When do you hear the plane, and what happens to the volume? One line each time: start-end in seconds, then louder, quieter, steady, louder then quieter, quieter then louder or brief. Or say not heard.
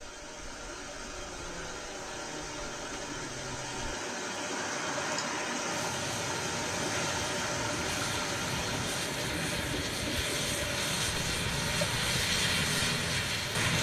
0.0-13.7 louder.